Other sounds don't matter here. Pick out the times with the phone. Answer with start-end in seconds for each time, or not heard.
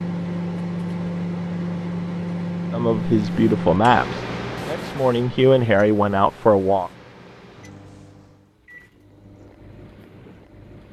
not heard.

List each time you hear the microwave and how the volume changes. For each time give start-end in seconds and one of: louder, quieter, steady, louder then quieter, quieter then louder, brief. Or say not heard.
0.0-10.8 quieter.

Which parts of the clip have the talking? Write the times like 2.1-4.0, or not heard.
2.7-6.9.